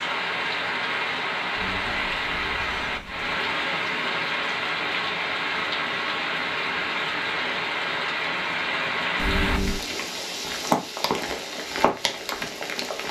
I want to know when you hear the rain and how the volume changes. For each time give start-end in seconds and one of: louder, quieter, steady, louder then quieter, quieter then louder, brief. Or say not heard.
0.0-13.0 steady.